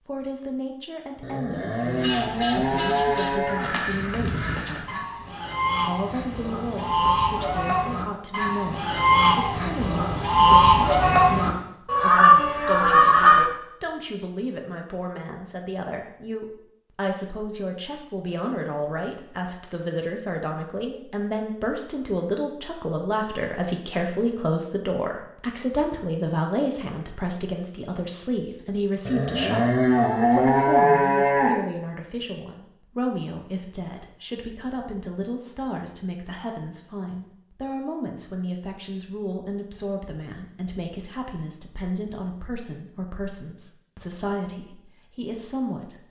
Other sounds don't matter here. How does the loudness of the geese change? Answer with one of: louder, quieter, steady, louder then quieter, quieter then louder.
louder.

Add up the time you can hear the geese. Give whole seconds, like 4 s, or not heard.
12 s.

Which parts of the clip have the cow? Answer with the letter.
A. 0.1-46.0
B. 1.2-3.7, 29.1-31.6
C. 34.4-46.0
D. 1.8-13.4
B.